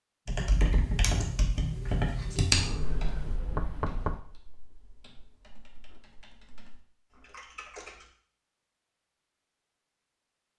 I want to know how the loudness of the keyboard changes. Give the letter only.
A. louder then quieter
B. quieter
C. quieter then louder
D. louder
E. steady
C.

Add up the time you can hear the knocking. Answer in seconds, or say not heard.
2 s.